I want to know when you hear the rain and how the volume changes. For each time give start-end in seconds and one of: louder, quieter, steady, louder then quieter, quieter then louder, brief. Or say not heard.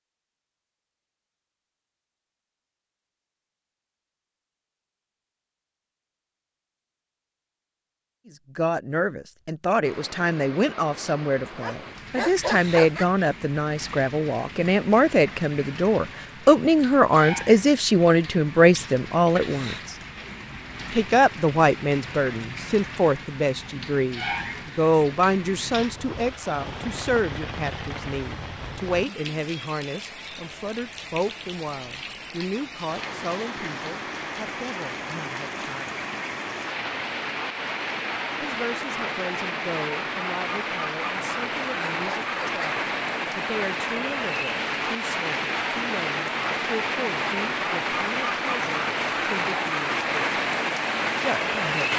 9.8-51.9 louder.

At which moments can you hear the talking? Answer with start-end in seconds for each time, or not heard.
8.2-19.9, 20.9-36.0, 38.4-50.4, 51.1-51.9.